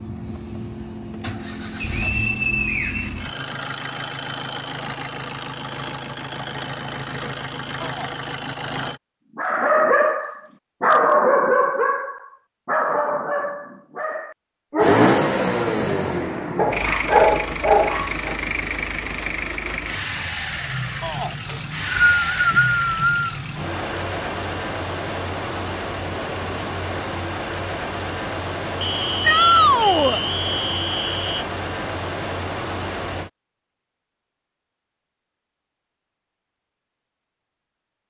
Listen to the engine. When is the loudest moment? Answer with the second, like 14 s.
15 s.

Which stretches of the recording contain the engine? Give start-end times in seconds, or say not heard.
0.0-9.0, 14.8-33.3.